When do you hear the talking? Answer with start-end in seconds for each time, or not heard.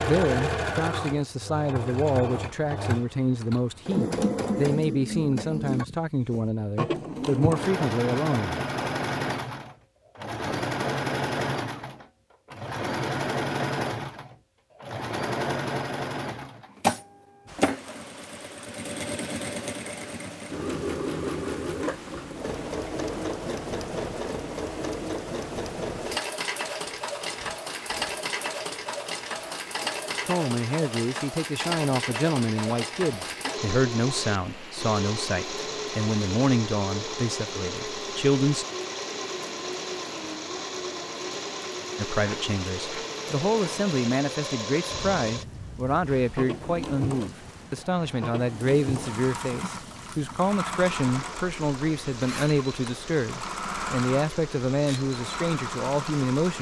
0.0-8.6, 30.2-38.6, 42.0-56.5.